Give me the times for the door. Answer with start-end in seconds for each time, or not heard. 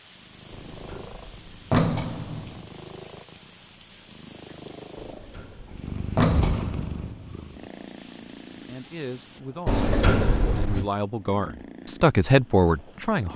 0.5-2.6, 5.0-7.3, 9.7-10.9.